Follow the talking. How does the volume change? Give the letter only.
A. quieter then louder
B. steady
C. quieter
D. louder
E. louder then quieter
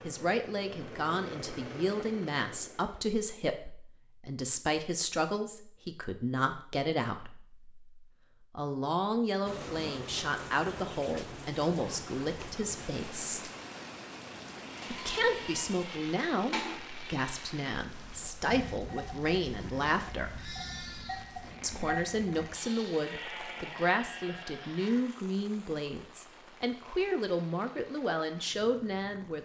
B.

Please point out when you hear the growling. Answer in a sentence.
The growling can't be heard in this clip.